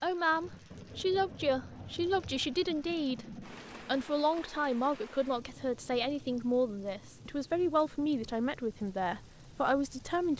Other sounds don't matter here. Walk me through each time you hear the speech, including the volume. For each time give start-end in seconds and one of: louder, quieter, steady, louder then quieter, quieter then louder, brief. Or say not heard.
0.0-10.3 steady.